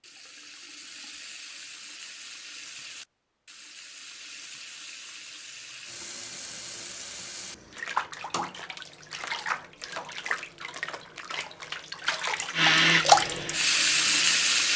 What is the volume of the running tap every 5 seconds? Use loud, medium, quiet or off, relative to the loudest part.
quiet, medium, loud.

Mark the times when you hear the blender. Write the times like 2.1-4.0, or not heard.
12.5-14.6.